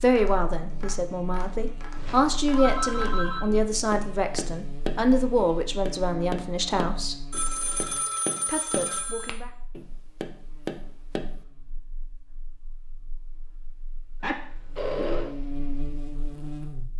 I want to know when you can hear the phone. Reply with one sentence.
The phone can be heard from 1.9 to 3.5 s, from 7.3 to 9.3 s and from 14.2 to 15.3 s.